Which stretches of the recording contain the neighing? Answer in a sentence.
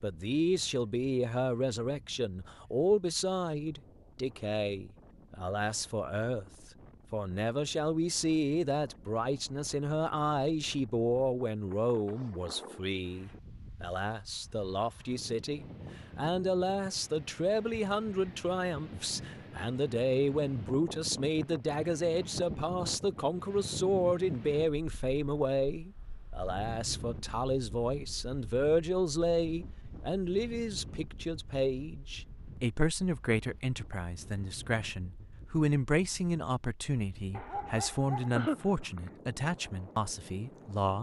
You can't hear the neighing here.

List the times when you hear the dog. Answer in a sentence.
The dog can be heard from 37.3 to 39.1 s.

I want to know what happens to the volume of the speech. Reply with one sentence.
The loudness of the speech stays about the same.